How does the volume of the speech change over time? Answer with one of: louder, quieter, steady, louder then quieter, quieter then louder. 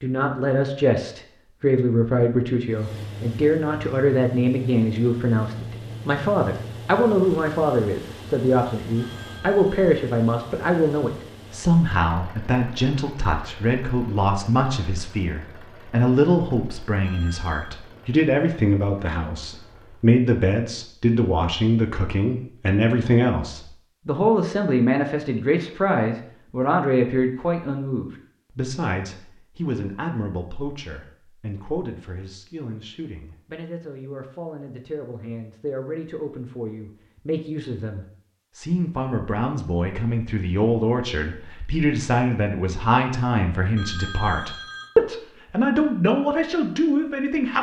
quieter then louder.